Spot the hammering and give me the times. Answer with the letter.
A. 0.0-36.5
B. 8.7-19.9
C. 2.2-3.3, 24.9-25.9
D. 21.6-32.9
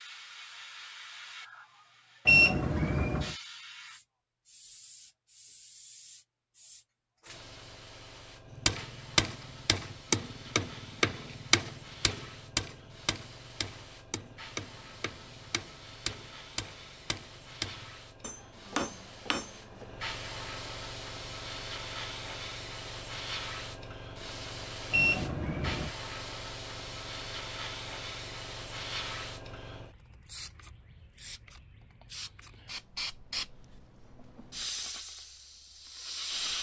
B.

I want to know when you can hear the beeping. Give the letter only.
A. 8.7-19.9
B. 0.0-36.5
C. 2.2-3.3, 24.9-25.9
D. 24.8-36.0
C.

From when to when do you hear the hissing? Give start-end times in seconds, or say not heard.
0.0-36.5.